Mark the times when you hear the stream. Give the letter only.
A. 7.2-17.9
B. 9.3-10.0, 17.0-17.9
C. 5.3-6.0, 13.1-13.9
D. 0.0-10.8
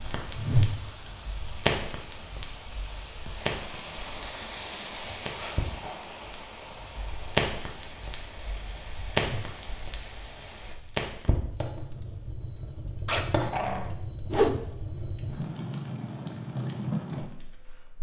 D.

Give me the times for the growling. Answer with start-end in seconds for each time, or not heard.
5.3-6.0, 13.1-13.9.